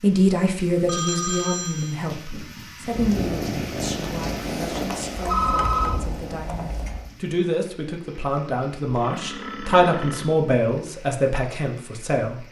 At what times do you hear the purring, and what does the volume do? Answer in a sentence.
The purring can be heard from 2.9 to 7.1 s, getting quieter.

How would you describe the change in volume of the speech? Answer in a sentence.
The volume of the speech goes down, then up.